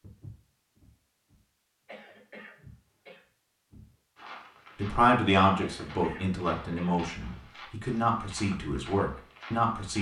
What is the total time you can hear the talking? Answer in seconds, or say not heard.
5 s.